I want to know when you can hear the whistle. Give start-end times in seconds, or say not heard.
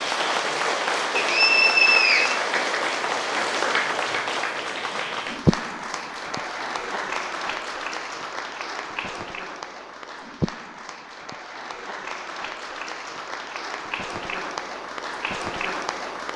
1.1-2.4.